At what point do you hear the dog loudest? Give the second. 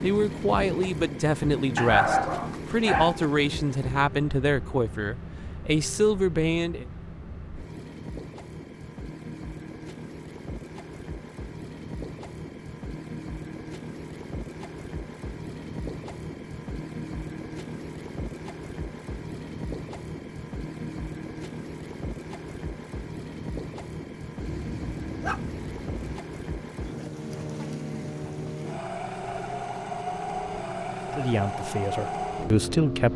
2 s.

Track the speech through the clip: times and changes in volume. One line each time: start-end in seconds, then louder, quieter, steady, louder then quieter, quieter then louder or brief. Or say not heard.
0.0-6.8 steady
31.1-33.1 brief.